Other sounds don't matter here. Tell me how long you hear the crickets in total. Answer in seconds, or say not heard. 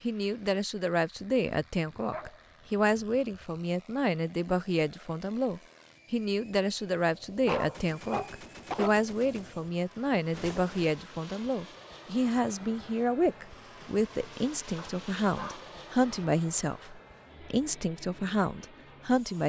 not heard.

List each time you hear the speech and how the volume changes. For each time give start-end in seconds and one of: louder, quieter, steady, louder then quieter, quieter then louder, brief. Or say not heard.
0.0-19.4 steady.